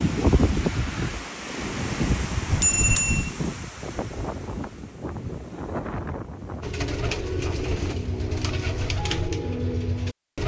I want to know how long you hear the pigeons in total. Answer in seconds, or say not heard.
4 s.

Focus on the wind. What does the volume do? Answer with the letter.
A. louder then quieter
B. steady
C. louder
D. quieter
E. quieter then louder
D.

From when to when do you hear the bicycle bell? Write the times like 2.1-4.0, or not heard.
2.5-3.4.